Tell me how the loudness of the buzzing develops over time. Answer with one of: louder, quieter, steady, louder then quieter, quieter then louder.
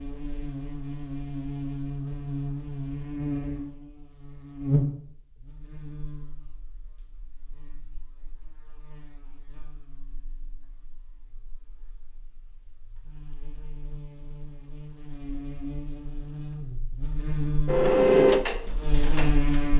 quieter then louder.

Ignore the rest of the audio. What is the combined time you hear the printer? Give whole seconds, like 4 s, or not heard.
2 s.